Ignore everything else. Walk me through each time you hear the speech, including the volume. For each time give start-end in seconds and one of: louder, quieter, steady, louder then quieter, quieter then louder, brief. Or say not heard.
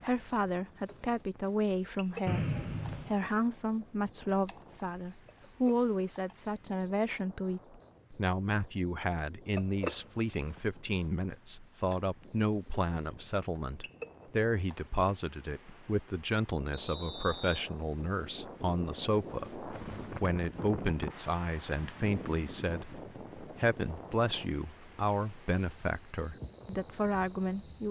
0.0-27.8 steady.